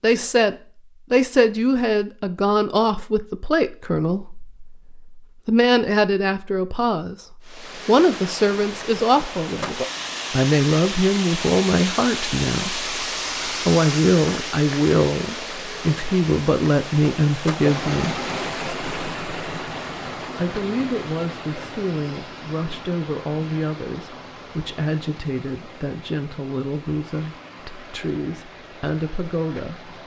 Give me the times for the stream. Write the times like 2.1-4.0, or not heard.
7.5-30.0.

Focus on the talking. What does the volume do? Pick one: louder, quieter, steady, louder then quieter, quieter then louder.
quieter.